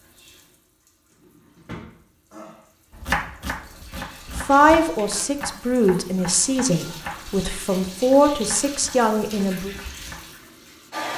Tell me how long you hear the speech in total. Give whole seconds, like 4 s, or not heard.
5 s.